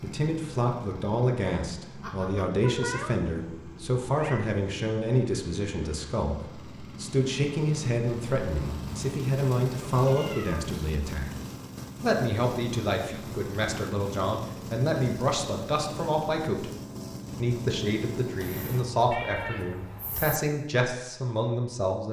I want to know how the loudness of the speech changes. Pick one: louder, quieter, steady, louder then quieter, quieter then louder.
steady.